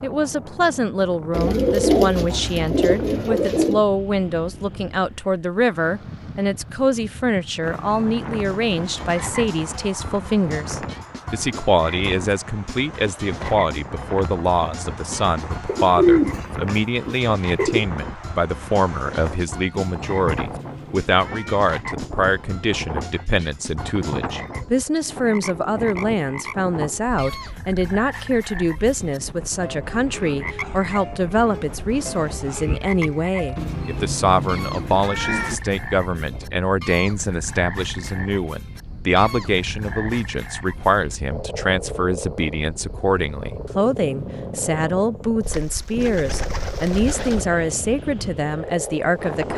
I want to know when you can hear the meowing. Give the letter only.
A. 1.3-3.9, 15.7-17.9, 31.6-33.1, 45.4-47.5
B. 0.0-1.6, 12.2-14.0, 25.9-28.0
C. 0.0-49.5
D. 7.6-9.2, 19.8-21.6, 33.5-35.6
D.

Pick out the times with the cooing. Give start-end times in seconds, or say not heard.
1.3-3.9, 15.7-17.9, 31.6-33.1, 45.4-47.5.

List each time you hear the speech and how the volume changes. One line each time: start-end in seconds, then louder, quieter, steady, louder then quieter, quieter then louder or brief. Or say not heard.
0.0-49.5 steady.